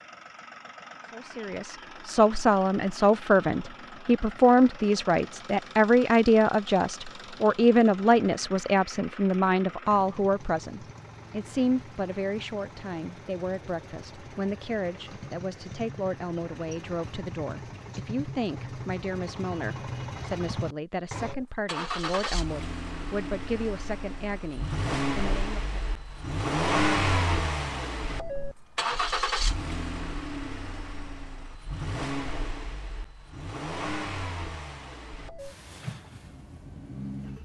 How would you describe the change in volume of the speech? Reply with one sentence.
The volume of the speech goes down.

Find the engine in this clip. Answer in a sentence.
You can hear the engine from 0.0 to 37.4 s.